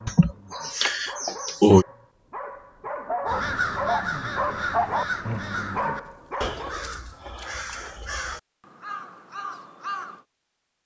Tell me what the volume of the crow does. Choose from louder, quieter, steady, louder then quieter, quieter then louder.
quieter.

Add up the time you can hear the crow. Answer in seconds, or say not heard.
7 s.